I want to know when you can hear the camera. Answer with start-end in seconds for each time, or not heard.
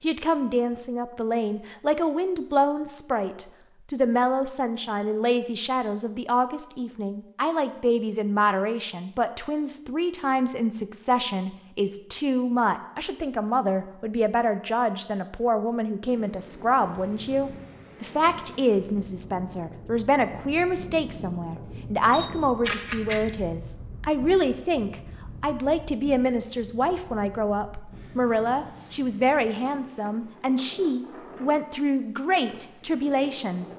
22.1-23.2.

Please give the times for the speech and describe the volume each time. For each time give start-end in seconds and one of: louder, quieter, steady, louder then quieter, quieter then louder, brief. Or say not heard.
0.0-33.7 steady.